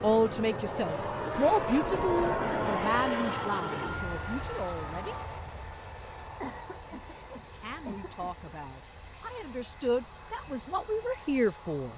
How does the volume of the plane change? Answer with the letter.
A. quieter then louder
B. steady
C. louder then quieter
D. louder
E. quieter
E.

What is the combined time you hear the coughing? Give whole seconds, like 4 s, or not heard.
2 s.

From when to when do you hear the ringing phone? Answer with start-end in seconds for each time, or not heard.
not heard.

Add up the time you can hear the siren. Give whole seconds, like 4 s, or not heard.
5 s.